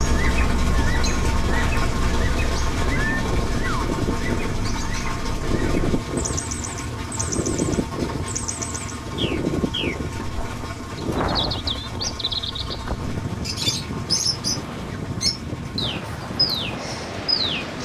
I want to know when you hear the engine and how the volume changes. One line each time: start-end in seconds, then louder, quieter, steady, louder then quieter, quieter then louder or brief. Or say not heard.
0.0-17.7 quieter.